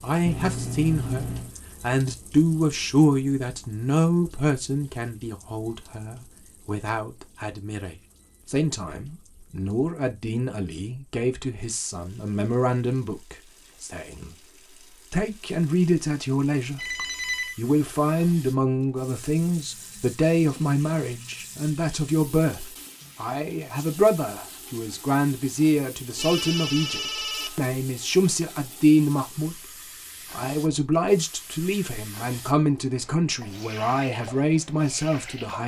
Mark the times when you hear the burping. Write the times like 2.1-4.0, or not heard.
not heard.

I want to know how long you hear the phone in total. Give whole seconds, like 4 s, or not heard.
4 s.